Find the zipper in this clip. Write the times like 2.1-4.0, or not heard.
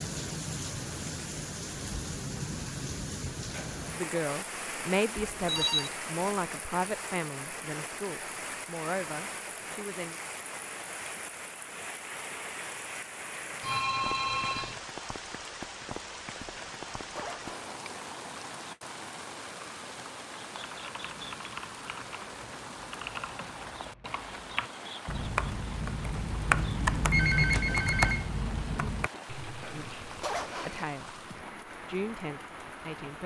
3.5-4.2, 16.5-17.8, 29.6-30.9.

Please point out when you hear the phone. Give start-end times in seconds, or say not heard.
5.2-5.9, 13.6-14.8, 27.1-28.3.